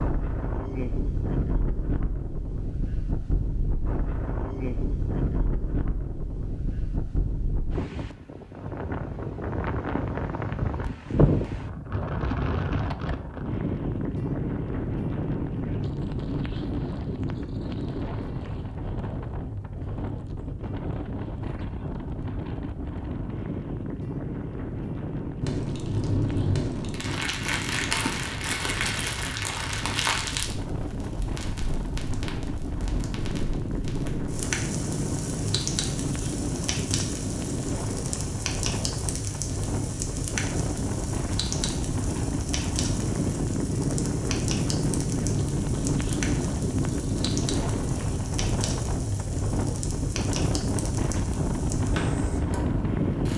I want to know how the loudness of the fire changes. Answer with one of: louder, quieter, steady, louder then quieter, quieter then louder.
quieter.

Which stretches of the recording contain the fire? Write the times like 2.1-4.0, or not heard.
25.4-53.3.